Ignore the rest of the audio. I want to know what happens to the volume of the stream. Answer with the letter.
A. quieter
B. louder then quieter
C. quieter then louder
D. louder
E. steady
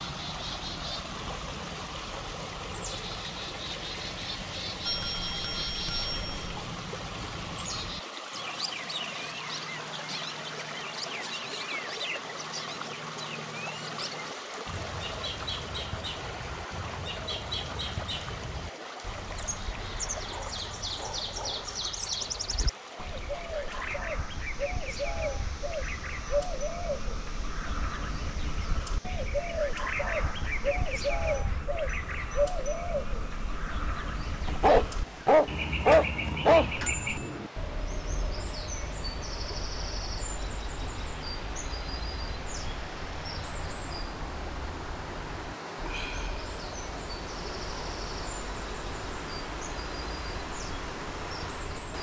C.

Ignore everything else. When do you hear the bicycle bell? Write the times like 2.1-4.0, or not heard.
4.8-6.4, 36.9-37.4.